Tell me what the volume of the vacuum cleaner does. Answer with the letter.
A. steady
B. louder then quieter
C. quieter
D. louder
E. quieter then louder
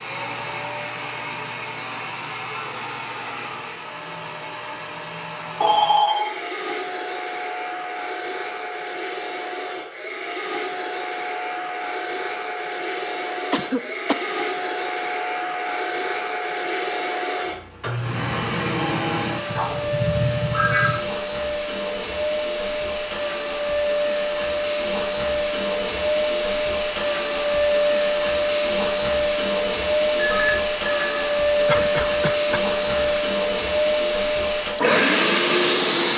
D.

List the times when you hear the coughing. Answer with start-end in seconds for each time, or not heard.
13.5-14.2, 31.6-33.2.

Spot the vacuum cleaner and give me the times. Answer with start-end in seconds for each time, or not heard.
0.0-36.1.